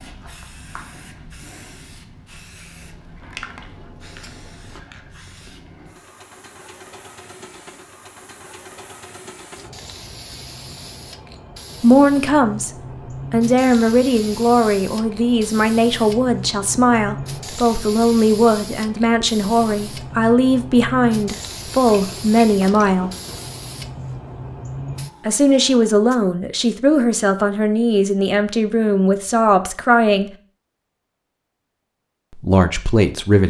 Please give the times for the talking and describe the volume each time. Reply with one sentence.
You can hear the talking briefly from 11.8 to 12.7 s; from 13.3 to 23.1 s, at a steady volume; from 25.2 to 30.3 s, at a steady volume; and briefly from 32.3 to 33.4 s.